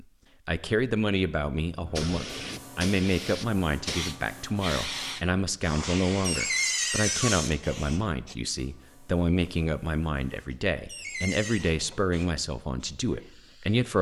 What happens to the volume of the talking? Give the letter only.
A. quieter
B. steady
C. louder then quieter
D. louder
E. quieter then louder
B.